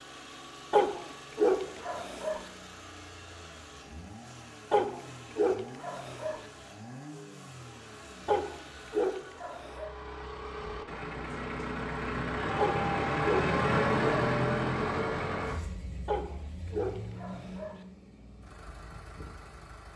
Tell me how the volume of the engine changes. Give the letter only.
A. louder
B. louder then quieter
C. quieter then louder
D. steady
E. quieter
B.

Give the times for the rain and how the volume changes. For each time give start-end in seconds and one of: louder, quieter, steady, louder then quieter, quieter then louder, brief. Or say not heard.
not heard.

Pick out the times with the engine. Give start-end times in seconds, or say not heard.
0.0-19.9.